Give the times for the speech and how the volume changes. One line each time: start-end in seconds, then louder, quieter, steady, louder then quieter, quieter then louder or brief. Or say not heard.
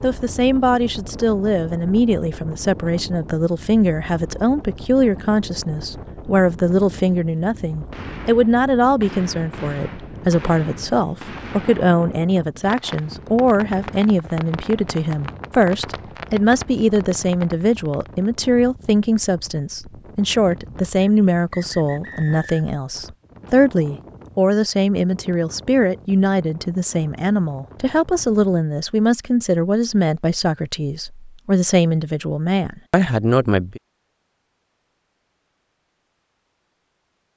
0.0-33.8 steady.